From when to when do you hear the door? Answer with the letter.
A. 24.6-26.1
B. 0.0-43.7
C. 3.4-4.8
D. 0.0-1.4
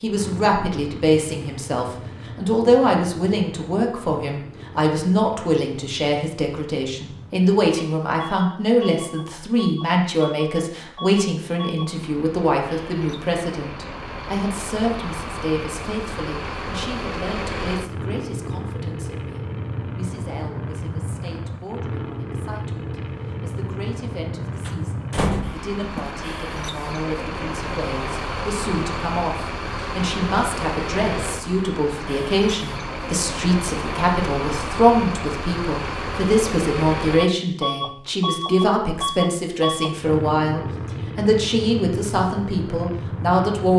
A.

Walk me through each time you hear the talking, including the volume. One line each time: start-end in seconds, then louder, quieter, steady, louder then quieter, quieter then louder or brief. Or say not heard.
0.0-43.7 quieter then louder.